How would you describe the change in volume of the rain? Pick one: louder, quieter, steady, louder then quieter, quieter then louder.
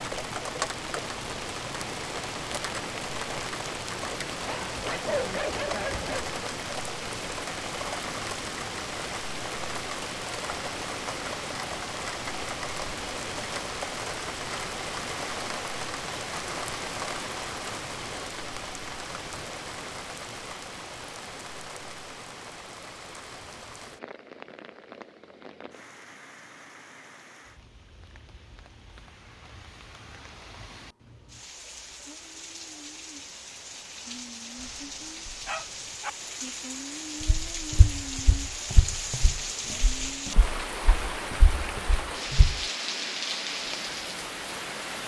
quieter then louder.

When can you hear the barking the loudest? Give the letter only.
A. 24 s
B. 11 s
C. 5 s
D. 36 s
C.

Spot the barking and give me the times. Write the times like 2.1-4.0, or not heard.
4.5-6.3, 34.5-36.1.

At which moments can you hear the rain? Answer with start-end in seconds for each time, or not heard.
0.0-45.0.